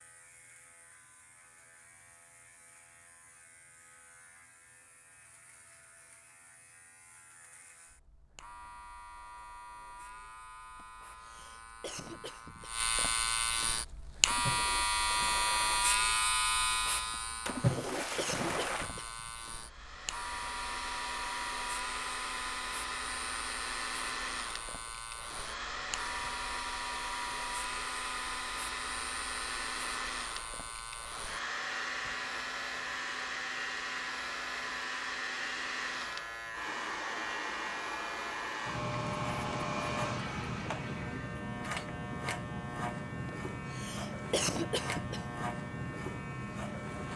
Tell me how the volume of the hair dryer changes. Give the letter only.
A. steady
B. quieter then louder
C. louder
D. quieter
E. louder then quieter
A.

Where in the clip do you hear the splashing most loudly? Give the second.
18 s.